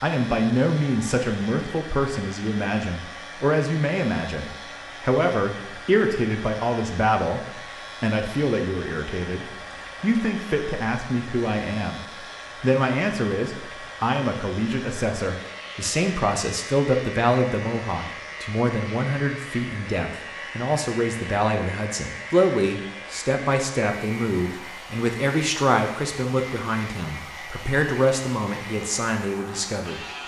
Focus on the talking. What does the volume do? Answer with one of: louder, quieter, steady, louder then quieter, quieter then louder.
steady.